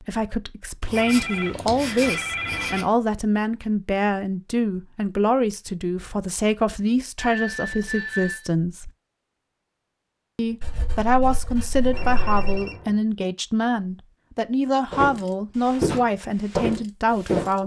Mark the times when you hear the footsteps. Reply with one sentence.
The footsteps can be heard from 14.9 to 17.5 s.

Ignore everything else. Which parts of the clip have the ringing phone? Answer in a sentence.
You can hear the ringing phone from 0.9 to 2.9 s, from 7.2 to 8.5 s and from 11.9 to 12.9 s.